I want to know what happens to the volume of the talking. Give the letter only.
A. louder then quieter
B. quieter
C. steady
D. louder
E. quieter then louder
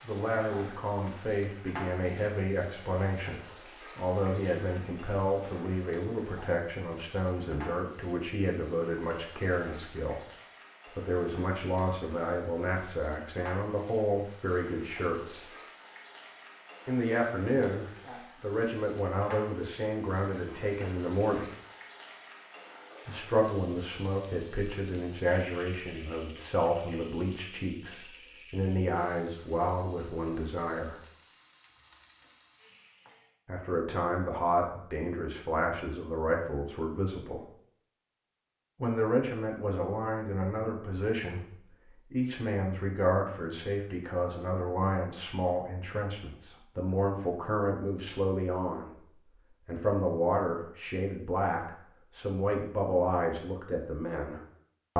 C.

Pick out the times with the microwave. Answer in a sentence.
You can't hear the microwave here.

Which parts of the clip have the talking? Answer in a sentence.
The talking can be heard from 0.0 to 10.2 s, from 10.9 to 15.5 s, from 16.9 to 21.4 s, from 23.1 to 31.0 s, from 33.5 to 37.5 s and from 38.8 to 54.9 s.